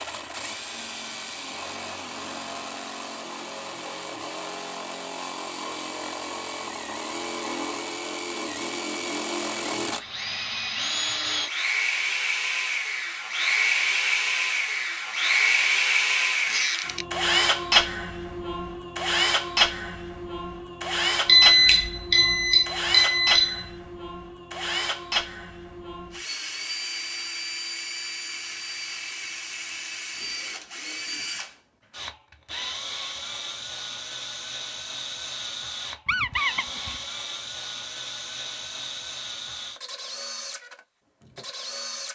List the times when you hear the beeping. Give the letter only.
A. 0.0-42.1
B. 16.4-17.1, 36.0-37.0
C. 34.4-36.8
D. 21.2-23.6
D.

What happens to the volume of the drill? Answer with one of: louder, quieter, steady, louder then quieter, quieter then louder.
louder then quieter.